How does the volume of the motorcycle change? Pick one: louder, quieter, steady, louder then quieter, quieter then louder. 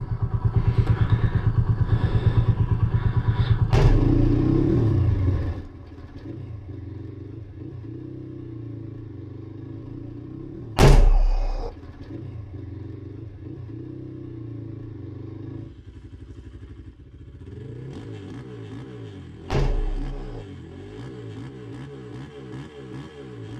quieter.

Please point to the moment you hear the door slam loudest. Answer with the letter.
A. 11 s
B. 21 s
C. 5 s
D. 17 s
A.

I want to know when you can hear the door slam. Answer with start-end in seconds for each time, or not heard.
3.7-4.7, 10.8-11.7, 19.5-20.4.